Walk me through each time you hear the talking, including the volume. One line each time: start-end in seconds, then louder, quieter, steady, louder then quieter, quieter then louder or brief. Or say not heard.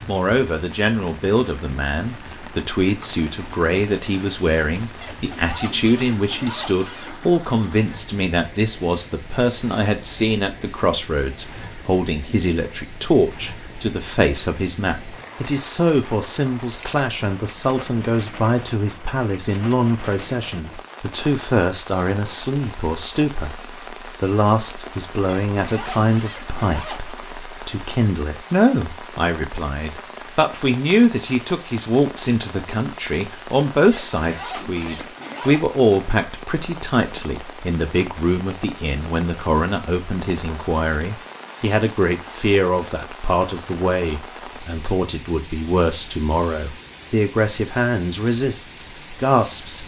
0.1-49.8 steady.